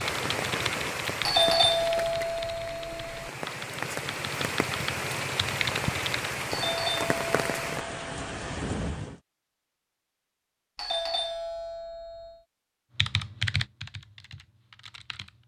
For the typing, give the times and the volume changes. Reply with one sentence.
You can hear the typing from 0.0 to 6.3 s, getting quieter then louder; and briefly from 12.9 to 15.4 s.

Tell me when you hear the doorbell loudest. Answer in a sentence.
The loudest moment of the doorbell is at 2 seconds.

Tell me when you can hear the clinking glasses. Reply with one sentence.
The clinking glasses can't be heard in this clip.